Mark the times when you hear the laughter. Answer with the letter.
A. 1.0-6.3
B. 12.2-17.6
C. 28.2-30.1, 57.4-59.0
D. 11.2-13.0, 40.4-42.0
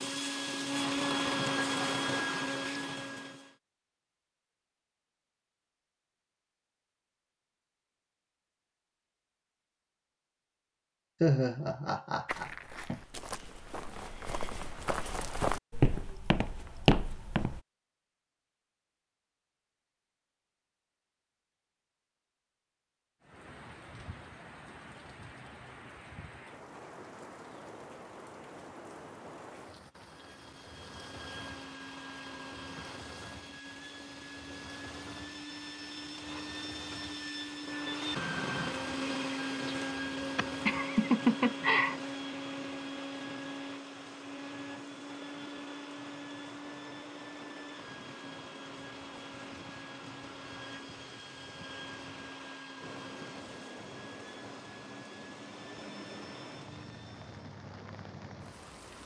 D.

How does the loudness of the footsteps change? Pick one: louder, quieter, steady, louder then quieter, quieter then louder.
louder.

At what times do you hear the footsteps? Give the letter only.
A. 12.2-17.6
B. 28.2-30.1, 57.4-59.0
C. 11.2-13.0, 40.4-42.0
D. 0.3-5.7
A.